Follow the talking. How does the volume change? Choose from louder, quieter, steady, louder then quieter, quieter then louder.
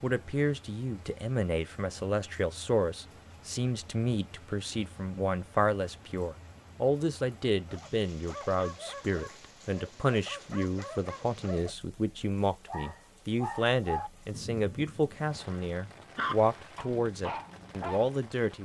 steady.